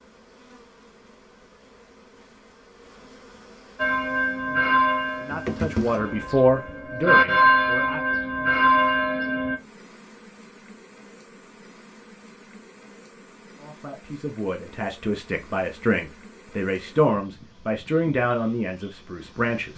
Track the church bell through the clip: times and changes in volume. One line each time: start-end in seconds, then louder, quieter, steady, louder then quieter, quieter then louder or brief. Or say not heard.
3.8-9.6 quieter then louder.